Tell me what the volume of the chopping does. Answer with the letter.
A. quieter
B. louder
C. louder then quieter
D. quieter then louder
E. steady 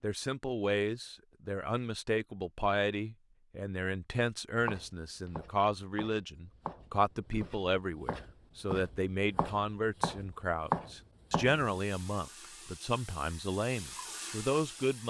B.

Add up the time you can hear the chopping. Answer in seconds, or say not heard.
7 s.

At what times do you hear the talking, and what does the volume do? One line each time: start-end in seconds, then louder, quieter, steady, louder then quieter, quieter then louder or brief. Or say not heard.
0.0-15.0 steady.